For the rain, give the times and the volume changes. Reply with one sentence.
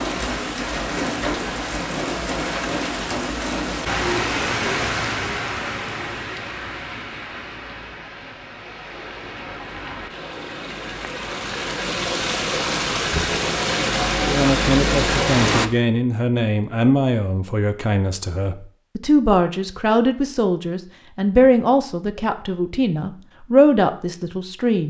You can hear the rain from 0.0 to 15.7 s, getting quieter then louder.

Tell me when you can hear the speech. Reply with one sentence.
The speech can be heard from 14.2 to 24.8 s.